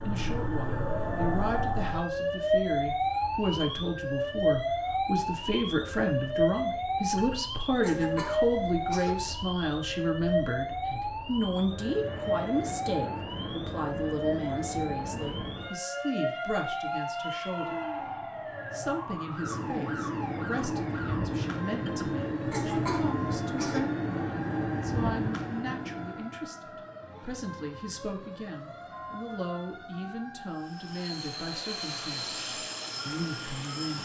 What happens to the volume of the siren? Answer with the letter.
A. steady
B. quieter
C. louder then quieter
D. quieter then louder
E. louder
B.